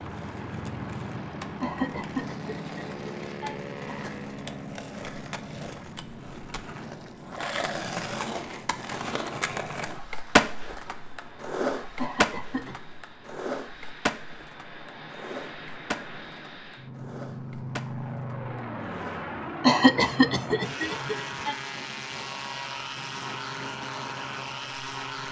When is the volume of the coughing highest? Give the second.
20 s.